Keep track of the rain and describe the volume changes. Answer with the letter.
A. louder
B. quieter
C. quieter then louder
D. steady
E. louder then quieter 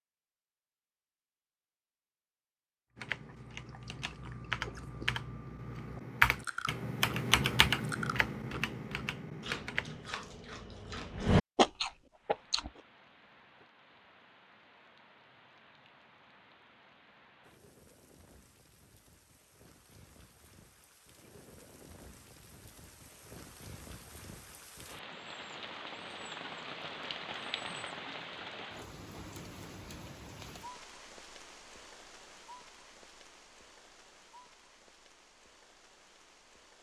E.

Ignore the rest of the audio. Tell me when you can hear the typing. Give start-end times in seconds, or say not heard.
3.0-10.1.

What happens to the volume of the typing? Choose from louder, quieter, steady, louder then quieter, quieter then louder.
louder then quieter.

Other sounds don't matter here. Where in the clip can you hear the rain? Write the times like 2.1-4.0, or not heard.
12.1-36.7.